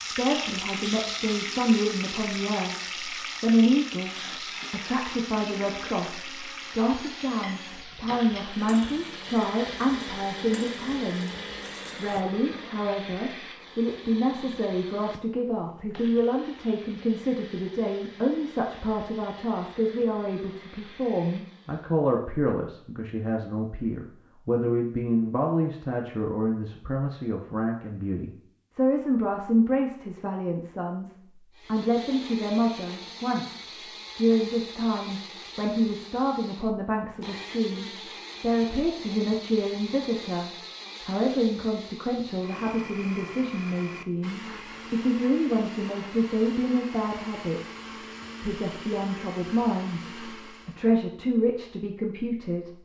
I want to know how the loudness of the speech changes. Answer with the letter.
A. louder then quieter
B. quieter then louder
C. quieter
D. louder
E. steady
E.